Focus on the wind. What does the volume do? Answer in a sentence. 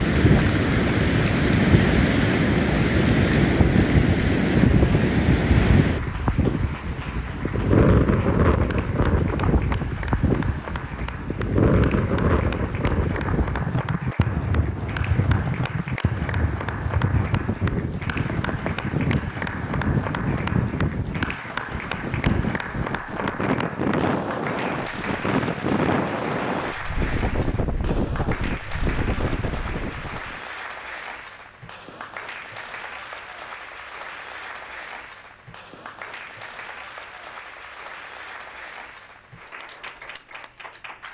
The loudness of the wind goes down.